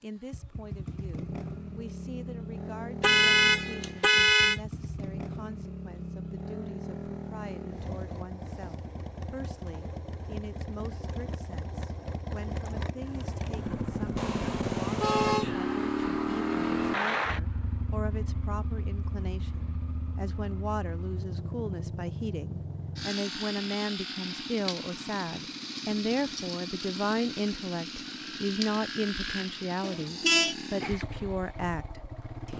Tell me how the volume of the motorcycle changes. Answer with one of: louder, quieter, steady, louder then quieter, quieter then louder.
louder then quieter.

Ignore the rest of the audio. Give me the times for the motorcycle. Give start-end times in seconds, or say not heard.
0.0-32.5.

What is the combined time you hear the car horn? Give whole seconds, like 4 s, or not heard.
4 s.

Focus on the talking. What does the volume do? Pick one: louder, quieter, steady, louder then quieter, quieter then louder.
louder.